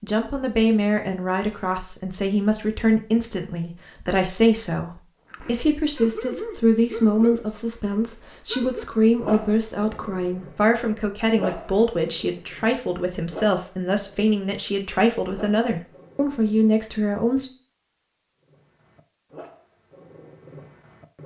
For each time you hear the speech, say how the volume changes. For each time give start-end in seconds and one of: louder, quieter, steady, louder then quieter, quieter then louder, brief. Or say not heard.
0.0-17.5 steady.